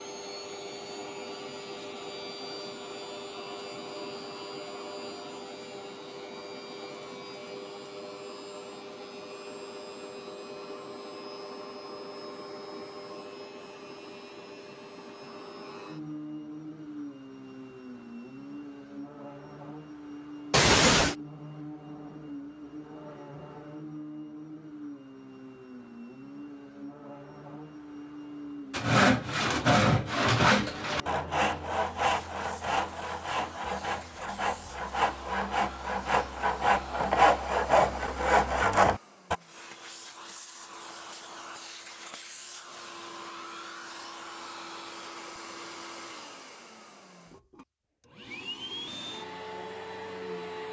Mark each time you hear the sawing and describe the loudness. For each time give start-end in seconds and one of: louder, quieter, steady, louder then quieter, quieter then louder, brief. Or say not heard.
28.7-39.4 quieter then louder.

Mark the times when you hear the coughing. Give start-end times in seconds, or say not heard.
20.5-21.1.